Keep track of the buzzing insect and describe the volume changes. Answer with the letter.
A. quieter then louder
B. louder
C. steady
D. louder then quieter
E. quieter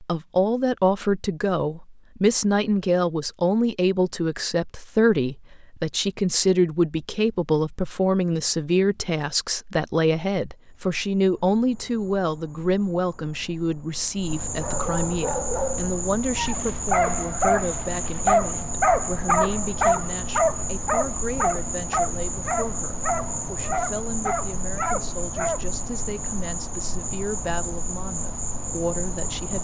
B.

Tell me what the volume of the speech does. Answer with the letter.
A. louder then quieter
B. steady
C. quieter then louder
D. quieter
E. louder
D.